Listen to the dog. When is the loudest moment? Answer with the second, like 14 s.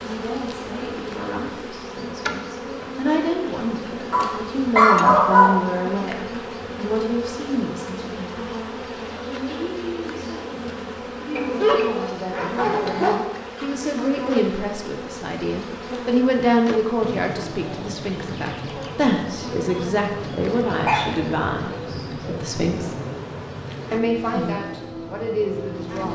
5 s.